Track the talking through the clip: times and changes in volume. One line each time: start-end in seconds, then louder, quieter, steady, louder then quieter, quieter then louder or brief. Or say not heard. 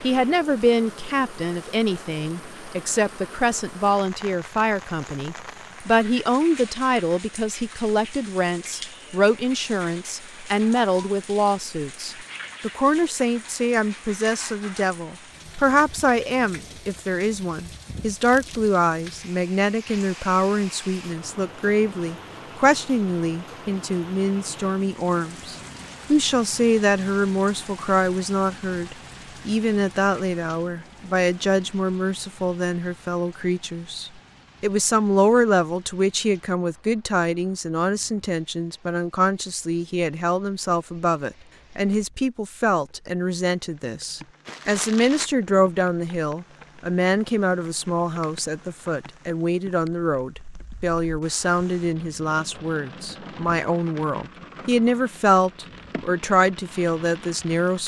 0.0-57.8 steady.